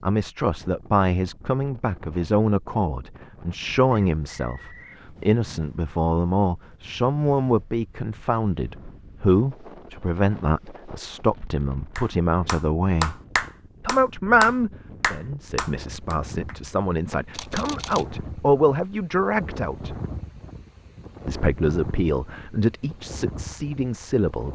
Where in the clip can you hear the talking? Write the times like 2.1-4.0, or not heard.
0.0-13.2, 13.8-19.9, 21.2-24.5.